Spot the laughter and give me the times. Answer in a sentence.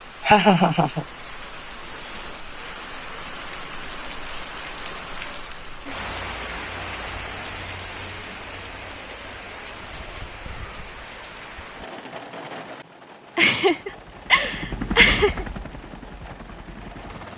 You can hear the laughter from 0.2 to 1.1 s and from 13.3 to 15.4 s.